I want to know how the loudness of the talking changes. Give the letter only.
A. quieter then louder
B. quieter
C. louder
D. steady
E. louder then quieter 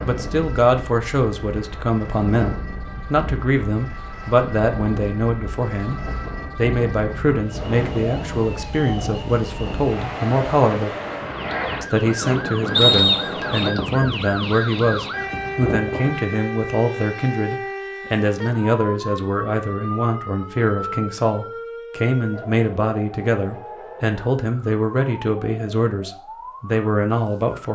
D.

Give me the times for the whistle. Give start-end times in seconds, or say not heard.
12.8-13.7.